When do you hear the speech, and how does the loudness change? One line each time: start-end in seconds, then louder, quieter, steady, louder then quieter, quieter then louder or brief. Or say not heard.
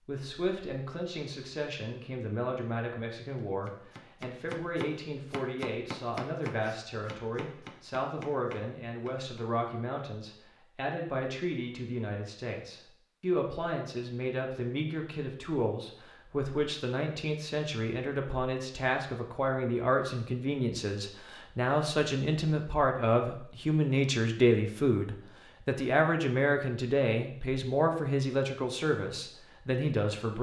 0.0-30.3 louder.